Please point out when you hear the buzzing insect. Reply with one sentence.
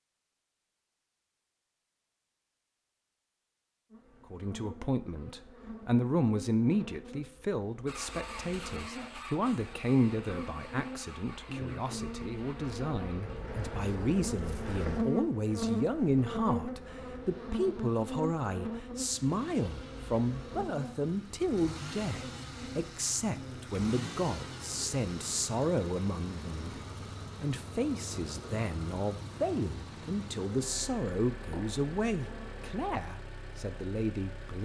You can hear the buzzing insect from 3.9 to 32.8 s.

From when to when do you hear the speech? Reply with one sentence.
You can hear the speech from 4.3 to 26.8 s and from 27.4 to 34.6 s.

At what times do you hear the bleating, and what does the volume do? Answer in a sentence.
You can't hear the bleating here.